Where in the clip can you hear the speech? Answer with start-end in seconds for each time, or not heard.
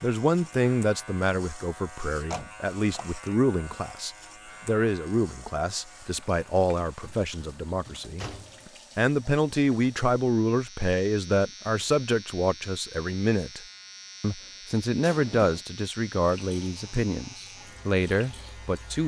0.0-13.6, 14.2-19.0.